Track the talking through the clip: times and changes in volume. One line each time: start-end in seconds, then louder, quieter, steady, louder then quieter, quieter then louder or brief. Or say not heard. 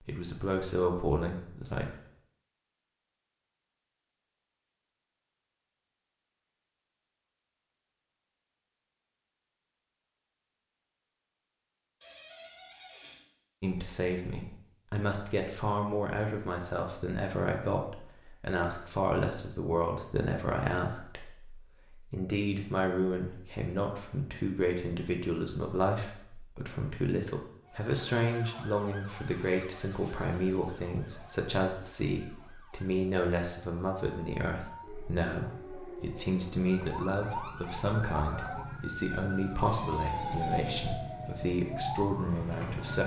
0.0-1.9 brief
13.6-43.0 steady.